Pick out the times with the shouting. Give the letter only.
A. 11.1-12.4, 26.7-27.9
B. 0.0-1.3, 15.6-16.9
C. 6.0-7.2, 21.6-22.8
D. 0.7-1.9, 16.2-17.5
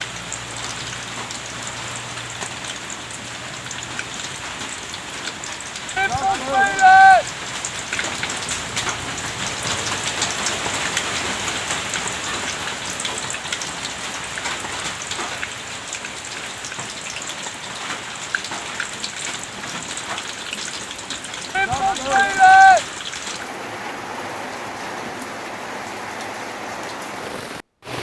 C.